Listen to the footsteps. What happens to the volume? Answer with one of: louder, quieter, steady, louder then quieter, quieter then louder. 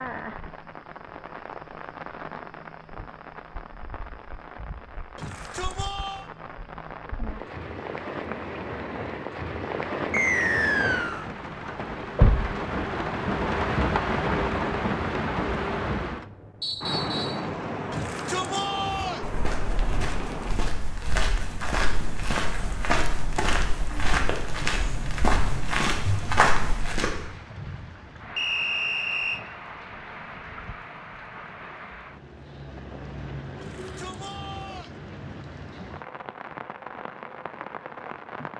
louder.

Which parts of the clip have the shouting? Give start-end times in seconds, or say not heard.
5.2-6.3, 17.9-19.3, 33.6-35.0.